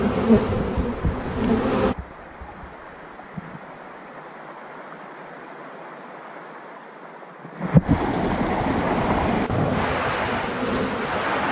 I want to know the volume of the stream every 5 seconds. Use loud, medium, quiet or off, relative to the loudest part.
quiet, loud, loud.